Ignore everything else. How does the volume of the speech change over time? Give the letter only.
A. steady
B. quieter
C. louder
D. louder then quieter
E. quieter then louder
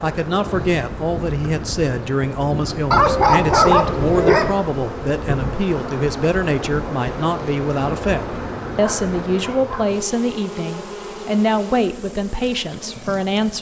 A.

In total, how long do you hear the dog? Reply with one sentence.
The dog can be heard for 3 seconds in total.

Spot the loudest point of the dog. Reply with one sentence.
The volume of the dog peaks at 4 seconds.